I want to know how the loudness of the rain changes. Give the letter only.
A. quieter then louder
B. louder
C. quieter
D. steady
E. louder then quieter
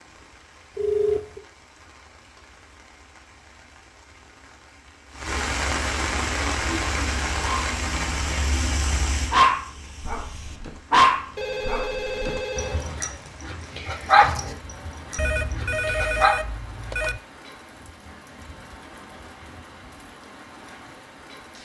E.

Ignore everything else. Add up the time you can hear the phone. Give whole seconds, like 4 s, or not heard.
4 s.